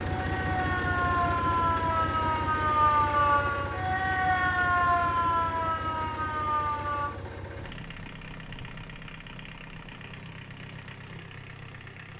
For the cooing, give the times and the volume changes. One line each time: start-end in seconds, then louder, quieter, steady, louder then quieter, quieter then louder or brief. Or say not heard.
not heard.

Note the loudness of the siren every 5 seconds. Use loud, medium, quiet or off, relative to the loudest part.
loud, loud, off.